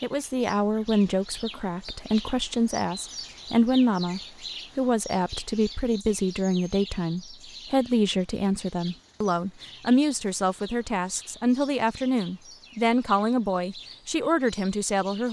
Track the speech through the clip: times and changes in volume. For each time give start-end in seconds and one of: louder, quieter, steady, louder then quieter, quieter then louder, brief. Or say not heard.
0.0-15.2 steady.